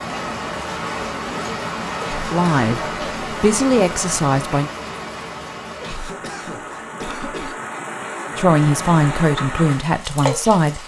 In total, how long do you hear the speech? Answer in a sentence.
You can hear the speech for 5 seconds altogether.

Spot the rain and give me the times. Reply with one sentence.
The rain can be heard from 0.0 to 10.8 s.